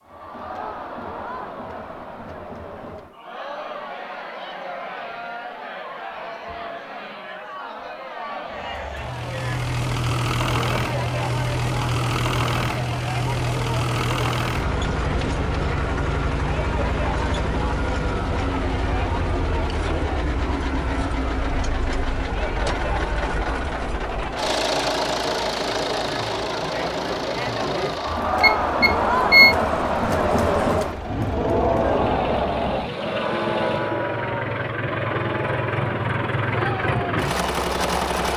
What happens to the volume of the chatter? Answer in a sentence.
The volume of the chatter goes up.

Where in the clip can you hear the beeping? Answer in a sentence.
The beeping can be heard from 28.1 to 29.6 s.